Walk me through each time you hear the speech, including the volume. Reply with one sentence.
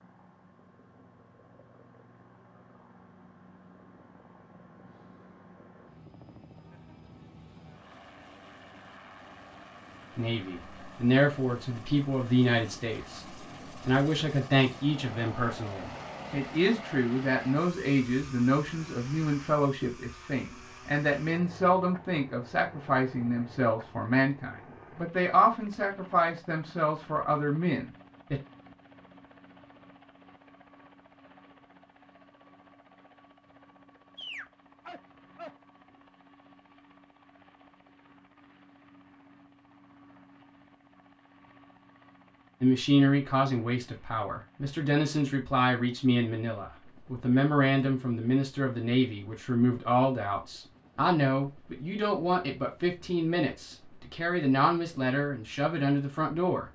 The speech can be heard from 10.2 to 28.4 s, at a steady volume; and from 42.6 to 56.6 s, at a steady volume.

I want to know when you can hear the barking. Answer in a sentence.
The barking can be heard from 34.1 to 36.0 s.